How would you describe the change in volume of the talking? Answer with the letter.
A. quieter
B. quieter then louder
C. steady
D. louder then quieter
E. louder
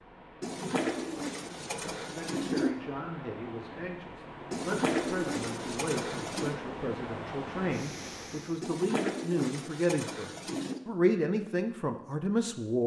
E.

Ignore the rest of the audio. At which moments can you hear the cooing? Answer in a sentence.
You can hear the cooing from 0.4 to 2.8 s, from 4.5 to 6.5 s and from 8.6 to 10.8 s.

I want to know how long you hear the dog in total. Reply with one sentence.
The dog can't be heard in this clip.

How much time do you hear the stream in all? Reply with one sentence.
The stream can be heard for 9 seconds in total.